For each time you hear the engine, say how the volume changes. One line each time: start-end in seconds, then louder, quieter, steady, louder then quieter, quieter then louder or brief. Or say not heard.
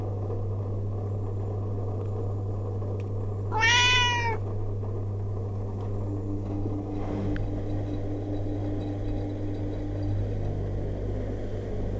0.0-11.9 steady.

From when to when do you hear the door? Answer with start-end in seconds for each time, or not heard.
not heard.